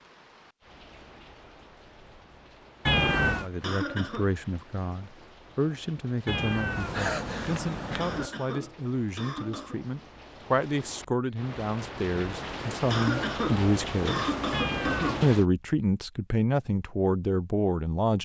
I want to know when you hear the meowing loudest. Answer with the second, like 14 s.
3 s.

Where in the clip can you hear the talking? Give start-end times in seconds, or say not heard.
3.4-14.3, 15.2-18.1.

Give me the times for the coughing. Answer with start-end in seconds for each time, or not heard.
3.6-4.3, 8.0-9.8, 12.9-15.3.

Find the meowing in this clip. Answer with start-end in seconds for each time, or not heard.
2.9-3.5, 6.2-8.3, 14.5-15.3.